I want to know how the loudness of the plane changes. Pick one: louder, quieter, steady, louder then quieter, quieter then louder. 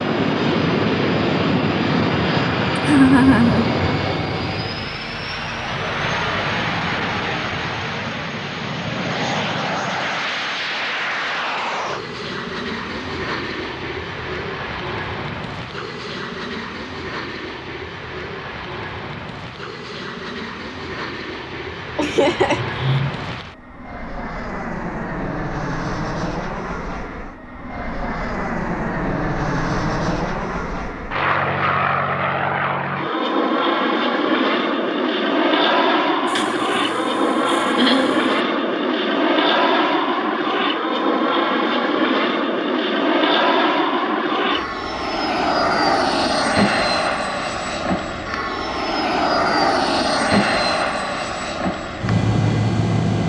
quieter then louder.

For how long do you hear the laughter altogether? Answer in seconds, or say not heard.
4 s.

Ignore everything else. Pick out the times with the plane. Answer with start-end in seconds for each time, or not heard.
0.0-53.2.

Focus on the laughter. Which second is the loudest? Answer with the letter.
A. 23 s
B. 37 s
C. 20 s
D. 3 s
D.